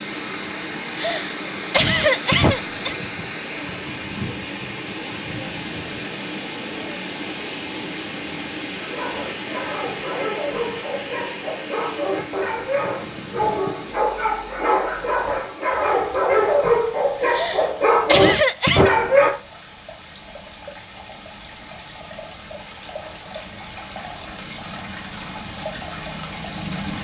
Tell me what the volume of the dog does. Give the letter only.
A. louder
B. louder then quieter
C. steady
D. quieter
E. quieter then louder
A.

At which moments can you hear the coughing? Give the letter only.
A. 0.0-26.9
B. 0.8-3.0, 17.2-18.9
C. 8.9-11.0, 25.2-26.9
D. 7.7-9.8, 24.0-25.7
B.